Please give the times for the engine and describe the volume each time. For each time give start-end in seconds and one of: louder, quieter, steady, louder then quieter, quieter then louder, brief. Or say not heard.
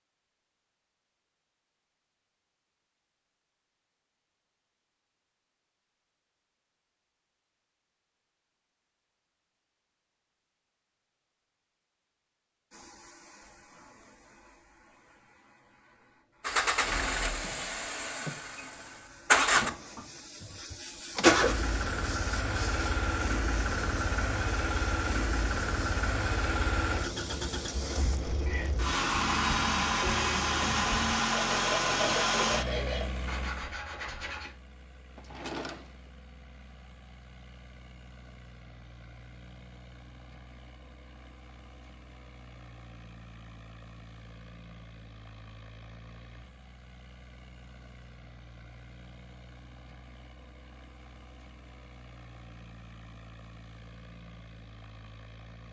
16.4-55.6 quieter.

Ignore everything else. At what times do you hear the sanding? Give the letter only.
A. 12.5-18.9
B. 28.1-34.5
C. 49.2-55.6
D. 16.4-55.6
B.